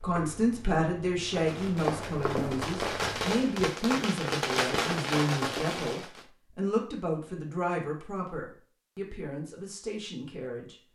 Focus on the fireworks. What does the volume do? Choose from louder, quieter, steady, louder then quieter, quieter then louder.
louder.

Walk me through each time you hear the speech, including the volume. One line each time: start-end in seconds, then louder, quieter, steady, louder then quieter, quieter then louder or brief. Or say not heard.
0.0-10.8 quieter.